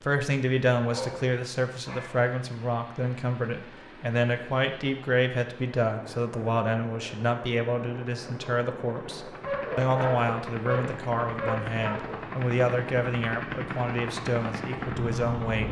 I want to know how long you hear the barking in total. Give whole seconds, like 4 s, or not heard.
4 s.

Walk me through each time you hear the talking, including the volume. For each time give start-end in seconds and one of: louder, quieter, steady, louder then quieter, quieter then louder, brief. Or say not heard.
0.0-15.6 steady.